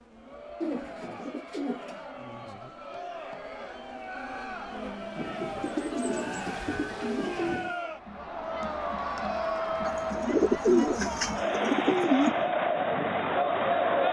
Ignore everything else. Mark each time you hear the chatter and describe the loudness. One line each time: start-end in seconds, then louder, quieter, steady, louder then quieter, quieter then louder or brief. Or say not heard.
0.0-14.0 louder.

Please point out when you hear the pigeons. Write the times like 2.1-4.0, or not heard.
0.6-2.0, 5.2-7.8, 9.8-12.4.